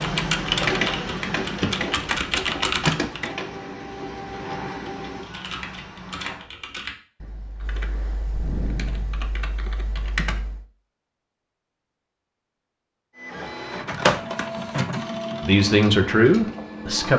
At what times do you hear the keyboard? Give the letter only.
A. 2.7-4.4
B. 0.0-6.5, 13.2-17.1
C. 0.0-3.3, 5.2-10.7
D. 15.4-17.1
C.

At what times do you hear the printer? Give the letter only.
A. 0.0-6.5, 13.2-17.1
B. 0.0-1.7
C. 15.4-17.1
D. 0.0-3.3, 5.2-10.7
A.